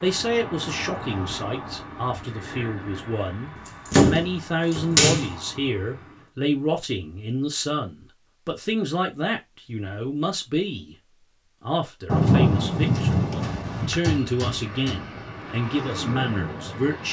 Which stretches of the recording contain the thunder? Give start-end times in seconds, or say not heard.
12.1-14.0.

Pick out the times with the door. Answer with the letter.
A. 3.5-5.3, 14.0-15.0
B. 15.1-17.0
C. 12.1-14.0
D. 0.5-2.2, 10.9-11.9
A.